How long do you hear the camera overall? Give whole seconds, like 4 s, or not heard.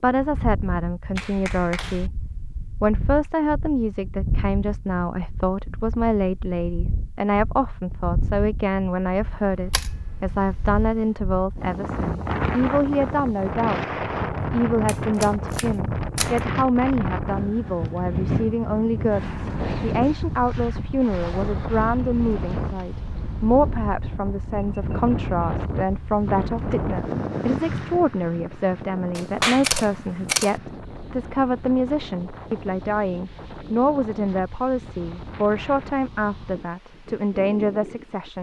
5 s.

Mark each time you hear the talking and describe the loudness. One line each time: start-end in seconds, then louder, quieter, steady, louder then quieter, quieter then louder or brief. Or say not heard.
0.0-38.3 steady.